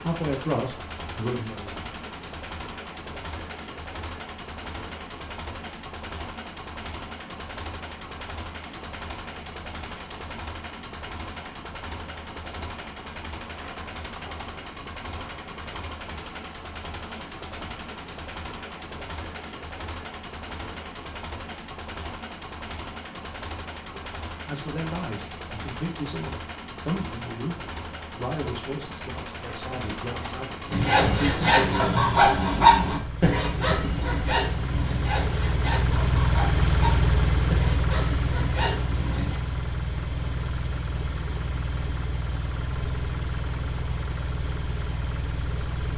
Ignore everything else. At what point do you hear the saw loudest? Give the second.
33 s.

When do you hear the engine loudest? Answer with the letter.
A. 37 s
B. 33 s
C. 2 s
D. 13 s
A.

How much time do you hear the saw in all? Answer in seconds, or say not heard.
9 s.